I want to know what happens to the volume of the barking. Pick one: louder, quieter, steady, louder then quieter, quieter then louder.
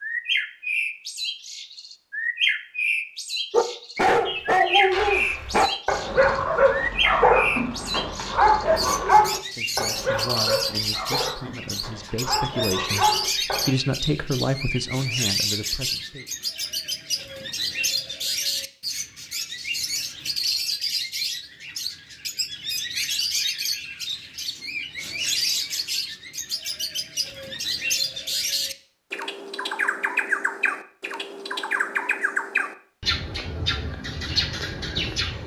quieter.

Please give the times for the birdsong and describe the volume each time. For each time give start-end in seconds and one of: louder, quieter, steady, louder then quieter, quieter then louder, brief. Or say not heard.
0.0-35.4 steady.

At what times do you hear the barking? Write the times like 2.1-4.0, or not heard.
3.5-13.8.